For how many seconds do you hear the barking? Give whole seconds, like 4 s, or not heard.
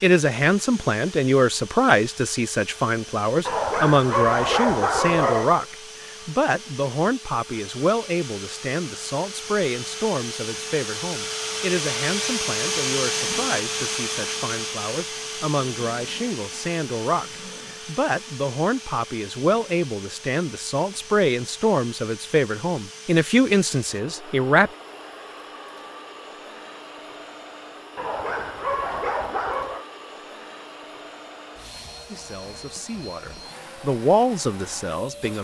4 s.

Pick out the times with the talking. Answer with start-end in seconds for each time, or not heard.
0.0-24.7, 32.0-35.3.